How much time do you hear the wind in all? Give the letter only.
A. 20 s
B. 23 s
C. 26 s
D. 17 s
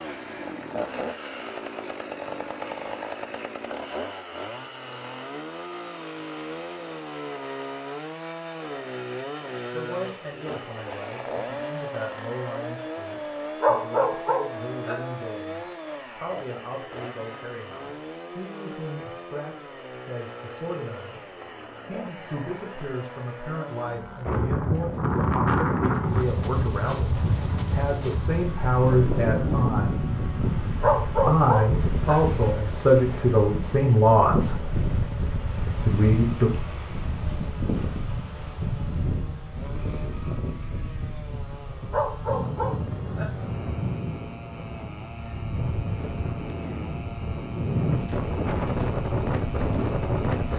C.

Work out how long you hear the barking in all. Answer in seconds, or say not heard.
4 s.